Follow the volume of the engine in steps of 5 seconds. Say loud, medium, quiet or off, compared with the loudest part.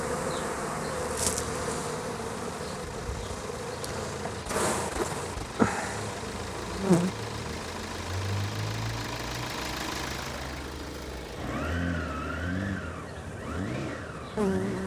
medium, loud, loud.